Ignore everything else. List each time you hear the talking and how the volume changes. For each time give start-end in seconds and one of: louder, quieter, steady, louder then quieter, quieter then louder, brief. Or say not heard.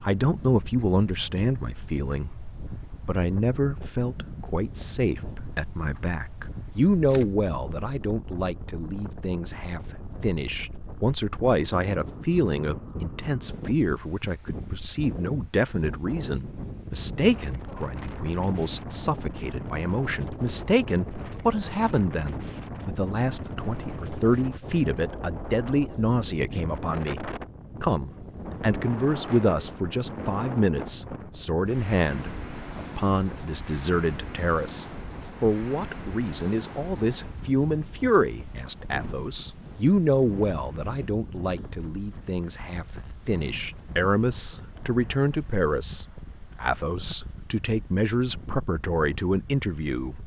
0.0-50.2 steady.